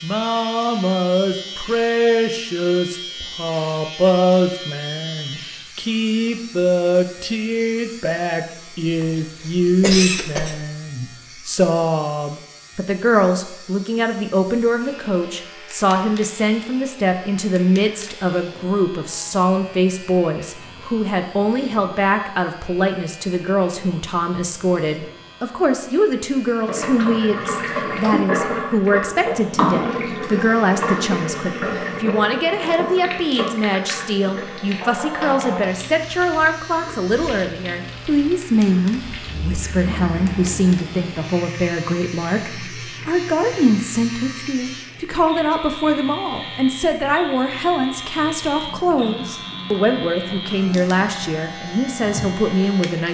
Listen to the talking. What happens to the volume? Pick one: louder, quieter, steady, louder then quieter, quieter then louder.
steady.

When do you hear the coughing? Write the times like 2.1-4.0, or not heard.
8.8-10.6.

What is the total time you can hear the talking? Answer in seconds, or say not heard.
53 s.